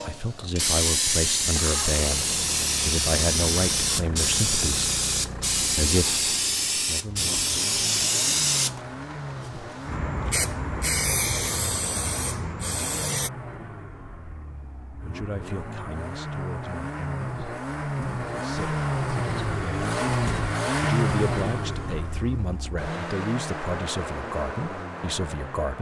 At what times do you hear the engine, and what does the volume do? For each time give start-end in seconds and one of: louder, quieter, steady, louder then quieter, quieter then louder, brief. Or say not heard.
0.2-25.7 louder.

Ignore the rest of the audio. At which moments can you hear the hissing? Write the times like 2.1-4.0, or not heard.
0.0-13.3.